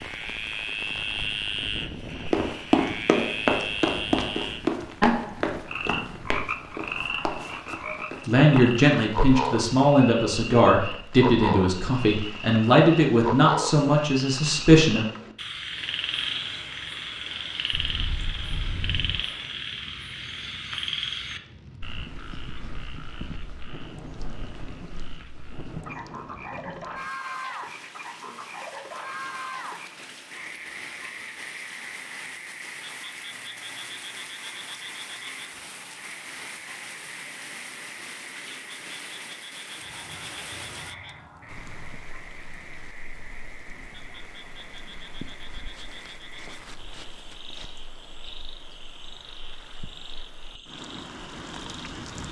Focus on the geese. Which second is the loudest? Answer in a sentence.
The loudest moment of the geese is at 19 seconds.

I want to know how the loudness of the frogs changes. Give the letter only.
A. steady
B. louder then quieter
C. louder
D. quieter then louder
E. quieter
E.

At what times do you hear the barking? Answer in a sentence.
The barking can't be heard in this clip.